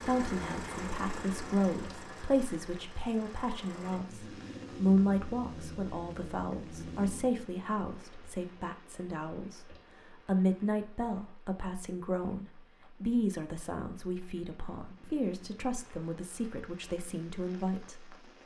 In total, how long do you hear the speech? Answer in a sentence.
You can hear the speech for 18 seconds altogether.